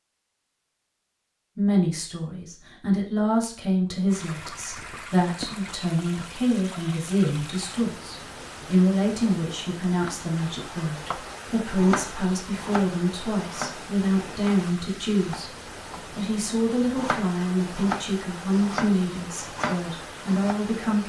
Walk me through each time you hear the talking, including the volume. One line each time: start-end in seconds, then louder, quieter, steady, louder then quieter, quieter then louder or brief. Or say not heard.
1.6-21.0 steady.